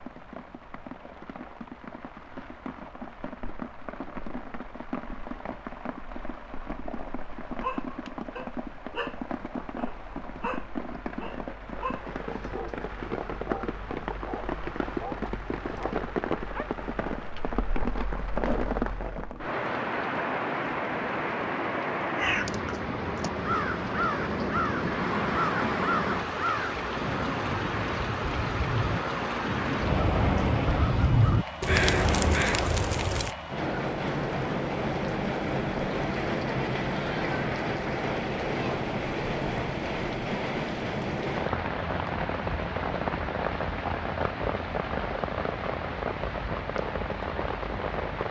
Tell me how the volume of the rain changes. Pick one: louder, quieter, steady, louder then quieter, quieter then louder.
louder.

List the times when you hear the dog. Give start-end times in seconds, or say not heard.
7.6-16.7.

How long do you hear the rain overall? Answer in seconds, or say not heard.
48 s.